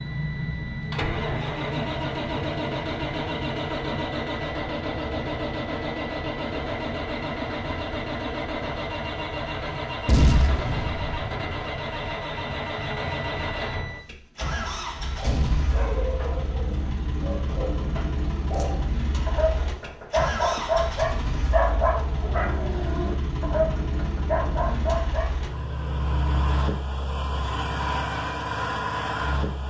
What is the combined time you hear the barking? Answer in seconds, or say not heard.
11 s.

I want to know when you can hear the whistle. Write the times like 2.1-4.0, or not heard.
not heard.